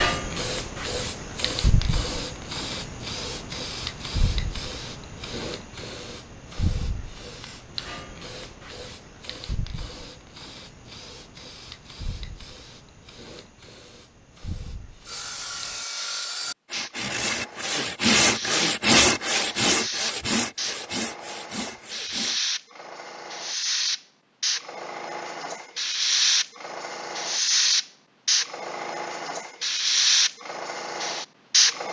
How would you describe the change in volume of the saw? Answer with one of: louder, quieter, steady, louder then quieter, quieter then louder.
louder then quieter.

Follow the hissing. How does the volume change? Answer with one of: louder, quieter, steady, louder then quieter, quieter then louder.
quieter then louder.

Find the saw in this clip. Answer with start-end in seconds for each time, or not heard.
15.1-22.4.